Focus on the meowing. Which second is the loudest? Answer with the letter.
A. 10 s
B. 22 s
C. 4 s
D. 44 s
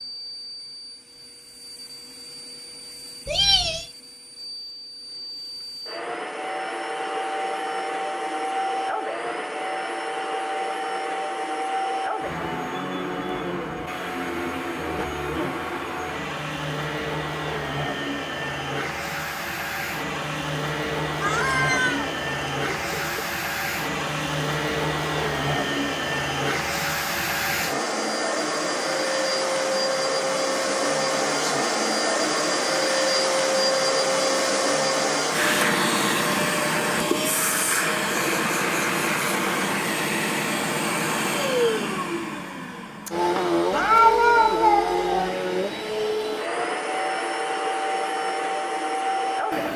D.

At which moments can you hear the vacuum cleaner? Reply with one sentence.
The vacuum cleaner can be heard from 0.0 to 49.7 s.